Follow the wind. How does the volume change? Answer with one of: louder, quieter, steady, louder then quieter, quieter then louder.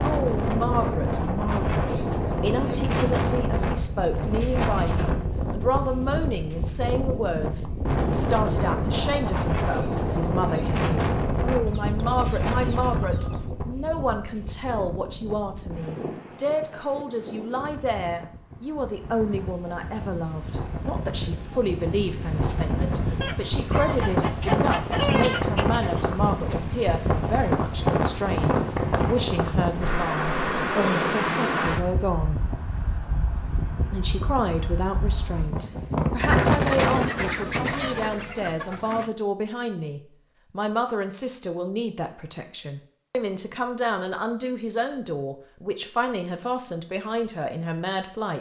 quieter then louder.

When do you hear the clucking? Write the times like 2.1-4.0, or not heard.
11.7-13.6, 23.2-26.1, 36.1-39.1.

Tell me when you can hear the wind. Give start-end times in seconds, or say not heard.
0.0-37.3.